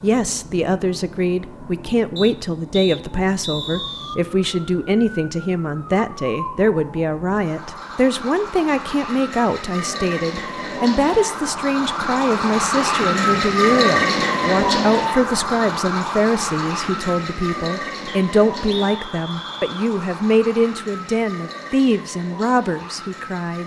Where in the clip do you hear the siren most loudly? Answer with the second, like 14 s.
14 s.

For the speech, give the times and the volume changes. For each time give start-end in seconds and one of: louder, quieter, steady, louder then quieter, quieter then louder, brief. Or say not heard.
0.0-23.6 steady.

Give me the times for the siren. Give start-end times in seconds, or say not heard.
0.0-23.6.